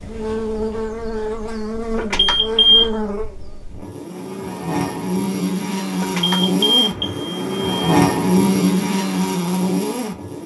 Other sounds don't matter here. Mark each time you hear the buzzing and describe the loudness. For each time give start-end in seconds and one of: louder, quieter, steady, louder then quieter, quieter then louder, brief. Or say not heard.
0.0-10.4 louder.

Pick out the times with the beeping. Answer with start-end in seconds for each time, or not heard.
1.9-2.9, 6.0-7.7.